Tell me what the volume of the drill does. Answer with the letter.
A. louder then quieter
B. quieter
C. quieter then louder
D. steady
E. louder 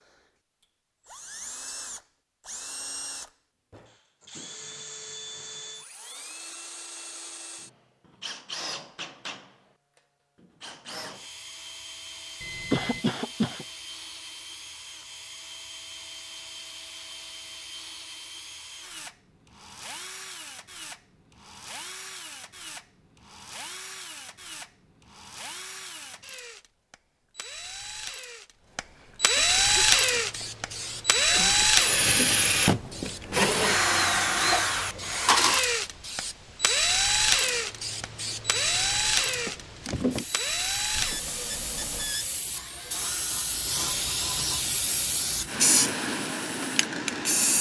A.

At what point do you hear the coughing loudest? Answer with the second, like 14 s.
13 s.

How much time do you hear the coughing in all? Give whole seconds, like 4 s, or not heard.
4 s.